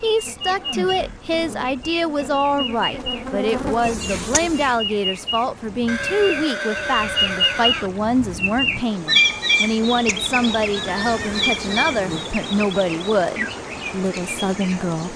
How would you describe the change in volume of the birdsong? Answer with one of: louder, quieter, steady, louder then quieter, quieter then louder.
louder then quieter.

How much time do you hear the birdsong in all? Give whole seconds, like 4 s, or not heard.
15 s.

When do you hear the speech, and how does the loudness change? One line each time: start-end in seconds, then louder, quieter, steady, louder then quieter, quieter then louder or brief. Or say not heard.
0.0-15.1 steady.